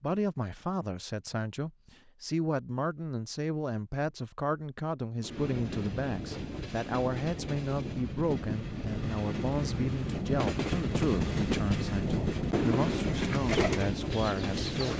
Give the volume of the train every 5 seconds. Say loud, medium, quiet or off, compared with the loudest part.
off, medium, loud.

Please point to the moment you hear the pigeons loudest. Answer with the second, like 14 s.
14 s.